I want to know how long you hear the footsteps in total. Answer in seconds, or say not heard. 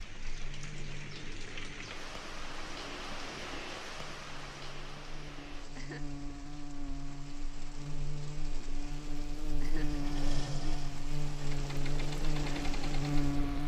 not heard.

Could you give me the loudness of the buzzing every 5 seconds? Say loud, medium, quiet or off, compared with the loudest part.
quiet, medium, loud.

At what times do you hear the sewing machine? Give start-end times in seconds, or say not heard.
9.7-13.4.